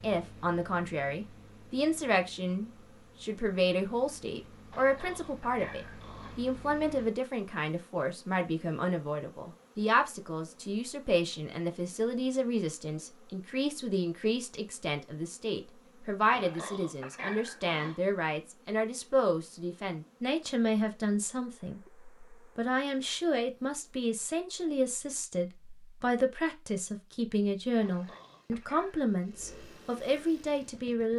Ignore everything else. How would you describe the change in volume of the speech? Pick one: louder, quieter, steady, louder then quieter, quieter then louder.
steady.